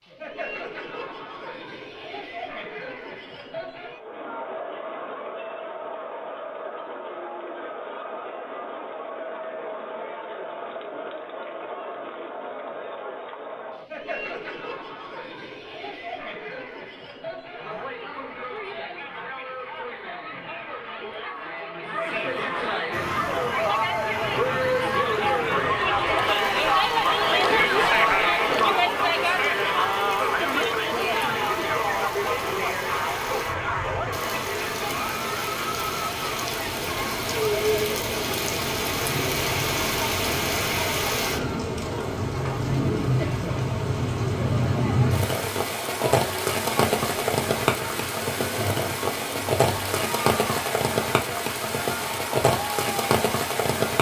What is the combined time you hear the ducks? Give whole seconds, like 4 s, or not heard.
not heard.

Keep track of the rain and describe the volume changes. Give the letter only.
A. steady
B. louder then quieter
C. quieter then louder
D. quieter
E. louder
E.